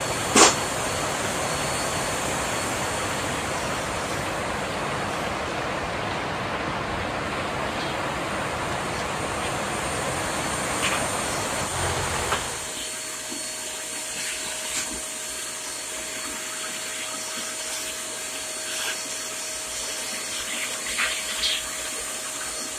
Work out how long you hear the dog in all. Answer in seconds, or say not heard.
not heard.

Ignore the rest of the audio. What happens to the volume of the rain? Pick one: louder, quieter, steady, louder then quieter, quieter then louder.
steady.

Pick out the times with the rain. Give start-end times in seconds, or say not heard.
0.0-12.8.